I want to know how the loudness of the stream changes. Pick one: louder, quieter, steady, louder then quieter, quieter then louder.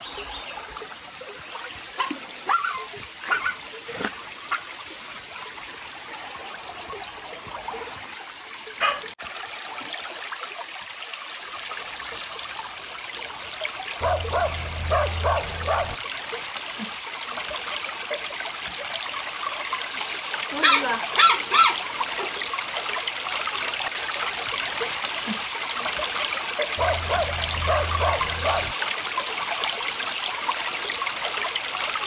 louder.